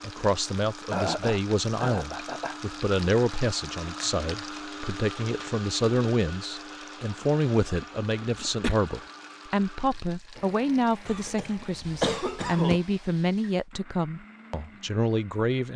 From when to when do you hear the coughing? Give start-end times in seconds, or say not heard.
0.9-2.5, 7.6-8.8, 11.1-12.8.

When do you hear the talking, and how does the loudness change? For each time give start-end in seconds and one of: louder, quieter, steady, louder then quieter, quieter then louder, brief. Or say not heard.
0.0-15.7 steady.